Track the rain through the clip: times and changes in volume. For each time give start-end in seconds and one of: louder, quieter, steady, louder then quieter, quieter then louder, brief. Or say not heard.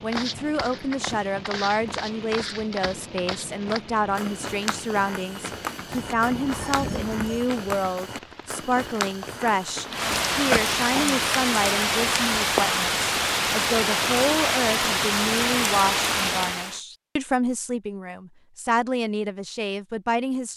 0.0-16.8 louder.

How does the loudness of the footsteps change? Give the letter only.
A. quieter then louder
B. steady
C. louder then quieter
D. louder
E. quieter
B.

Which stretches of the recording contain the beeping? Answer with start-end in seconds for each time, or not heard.
5.8-7.5.